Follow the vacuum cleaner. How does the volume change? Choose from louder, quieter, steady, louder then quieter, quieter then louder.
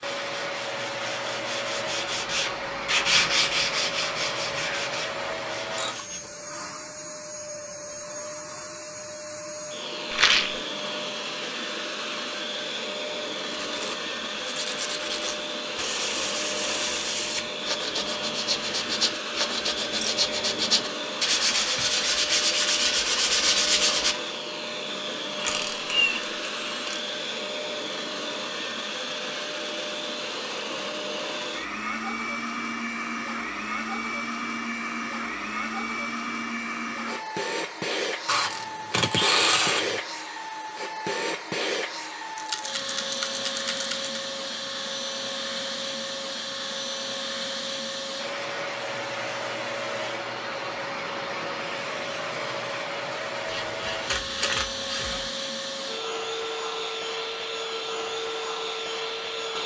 steady.